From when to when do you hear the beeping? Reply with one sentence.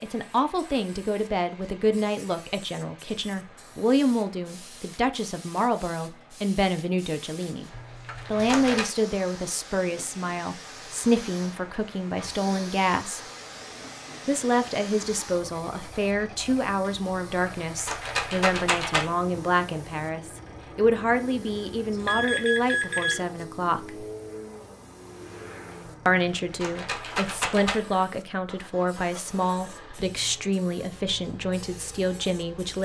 The beeping can be heard from 21.9 to 23.4 s.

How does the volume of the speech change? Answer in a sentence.
The loudness of the speech stays about the same.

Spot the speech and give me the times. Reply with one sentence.
You can hear the speech from 0.0 to 7.7 s, from 8.3 to 13.2 s, from 14.2 to 24.1 s and from 26.1 to 32.8 s.